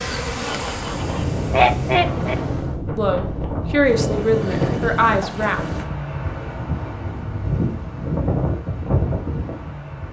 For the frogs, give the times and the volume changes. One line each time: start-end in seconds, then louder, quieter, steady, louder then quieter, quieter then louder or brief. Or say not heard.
not heard.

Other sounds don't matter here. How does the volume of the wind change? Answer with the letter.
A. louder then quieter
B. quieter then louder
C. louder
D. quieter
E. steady
E.